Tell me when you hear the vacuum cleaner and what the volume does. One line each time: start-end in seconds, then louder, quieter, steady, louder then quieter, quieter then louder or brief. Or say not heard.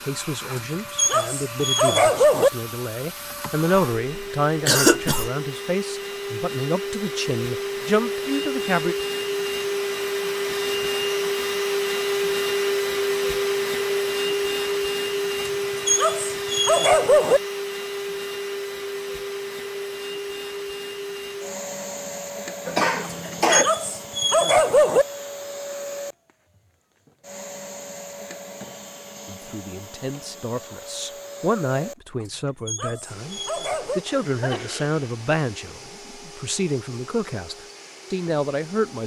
0.0-39.0 louder then quieter.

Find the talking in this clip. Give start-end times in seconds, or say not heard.
0.0-8.9, 29.2-39.0.